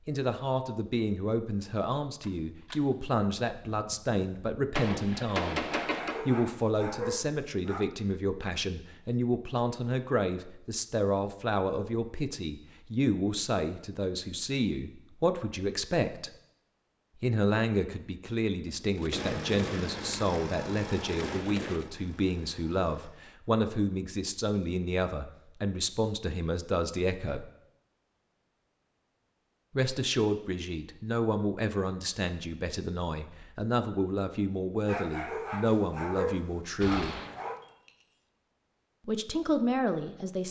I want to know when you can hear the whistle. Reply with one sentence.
You can't hear the whistle here.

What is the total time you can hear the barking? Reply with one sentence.
You can hear the barking for 5 seconds altogether.